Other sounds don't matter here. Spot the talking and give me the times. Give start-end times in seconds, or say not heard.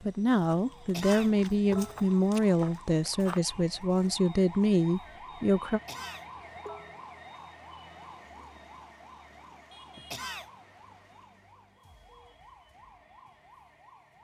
0.0-5.8.